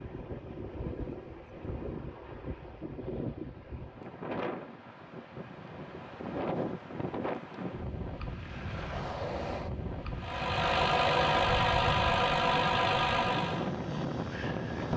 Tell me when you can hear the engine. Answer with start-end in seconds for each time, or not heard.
10.2-13.8.